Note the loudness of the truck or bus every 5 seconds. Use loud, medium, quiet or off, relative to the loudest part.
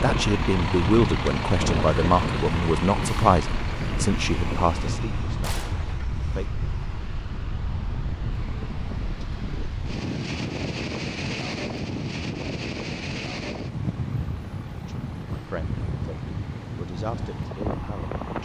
loud, medium, quiet, medium.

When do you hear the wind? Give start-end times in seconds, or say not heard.
0.0-18.3.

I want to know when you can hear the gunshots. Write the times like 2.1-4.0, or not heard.
5.4-6.0.